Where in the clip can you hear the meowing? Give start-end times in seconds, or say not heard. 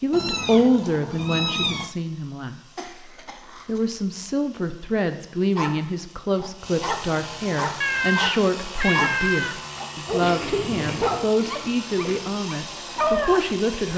0.1-1.9, 7.8-9.8.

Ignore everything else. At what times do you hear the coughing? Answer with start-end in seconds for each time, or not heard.
2.8-4.2, 10.2-12.2.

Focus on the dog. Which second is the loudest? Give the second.
13 s.